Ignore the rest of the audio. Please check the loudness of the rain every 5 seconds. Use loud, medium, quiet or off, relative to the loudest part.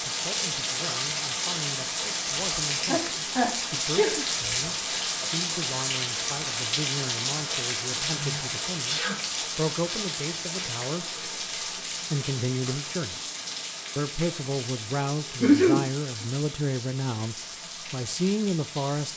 loud, loud, medium, medium.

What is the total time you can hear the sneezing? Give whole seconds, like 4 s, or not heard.
3 s.